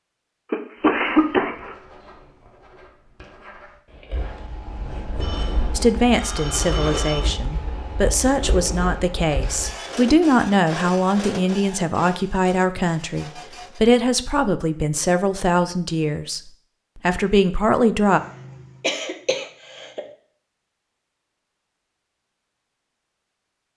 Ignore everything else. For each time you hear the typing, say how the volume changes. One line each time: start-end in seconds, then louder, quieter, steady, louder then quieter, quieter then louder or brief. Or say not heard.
not heard.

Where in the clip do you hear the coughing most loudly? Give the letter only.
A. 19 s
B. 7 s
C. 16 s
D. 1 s
D.